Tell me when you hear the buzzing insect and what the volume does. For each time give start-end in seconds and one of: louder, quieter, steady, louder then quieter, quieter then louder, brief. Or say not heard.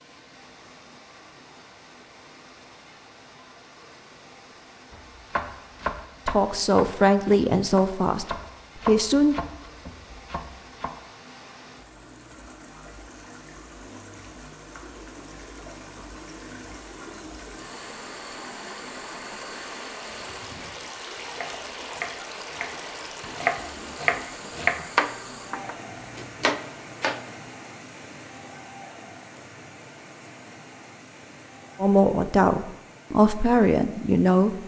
not heard.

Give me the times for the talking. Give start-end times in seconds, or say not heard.
6.2-9.3, 31.8-34.6.